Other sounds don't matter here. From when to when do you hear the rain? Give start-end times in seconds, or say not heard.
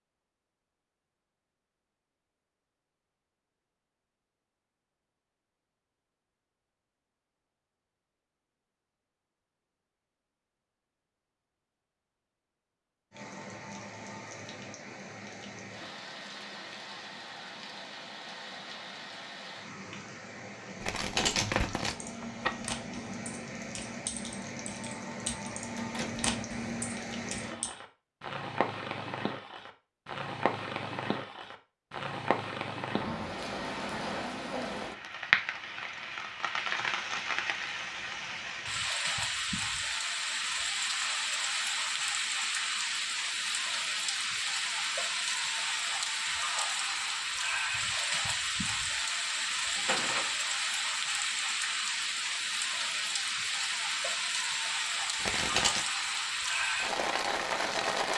13.1-58.1.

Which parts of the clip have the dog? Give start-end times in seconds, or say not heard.
not heard.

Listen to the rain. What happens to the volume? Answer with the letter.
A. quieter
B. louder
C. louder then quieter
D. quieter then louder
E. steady
B.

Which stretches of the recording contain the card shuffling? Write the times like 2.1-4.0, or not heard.
20.8-22.7, 55.2-55.9.